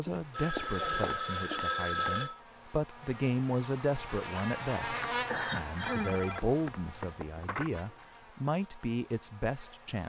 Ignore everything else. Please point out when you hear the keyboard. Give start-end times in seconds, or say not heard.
not heard.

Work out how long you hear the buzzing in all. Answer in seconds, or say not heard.
10 s.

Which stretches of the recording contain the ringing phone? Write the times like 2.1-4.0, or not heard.
0.1-2.4, 5.8-7.8.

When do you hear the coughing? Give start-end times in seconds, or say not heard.
5.2-6.2.